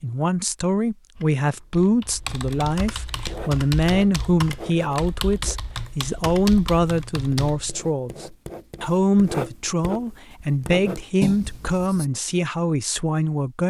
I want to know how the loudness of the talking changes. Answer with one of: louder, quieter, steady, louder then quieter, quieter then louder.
steady.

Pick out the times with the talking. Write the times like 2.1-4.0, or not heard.
0.0-13.6.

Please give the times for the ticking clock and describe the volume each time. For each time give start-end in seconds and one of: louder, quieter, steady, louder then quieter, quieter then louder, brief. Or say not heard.
not heard.